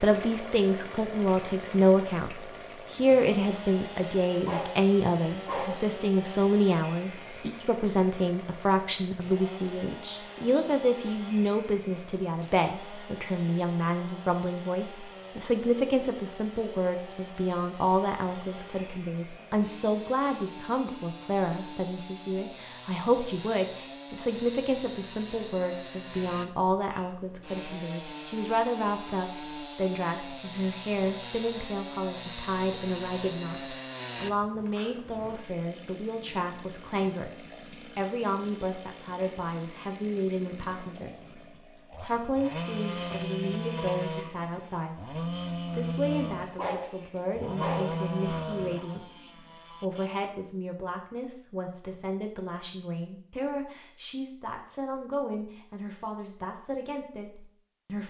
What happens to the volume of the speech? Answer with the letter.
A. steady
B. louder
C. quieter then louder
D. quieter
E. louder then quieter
D.